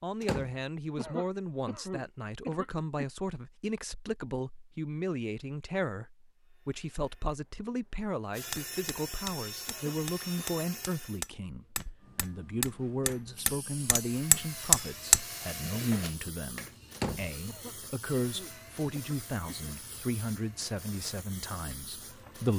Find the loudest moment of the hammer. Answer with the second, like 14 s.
15 s.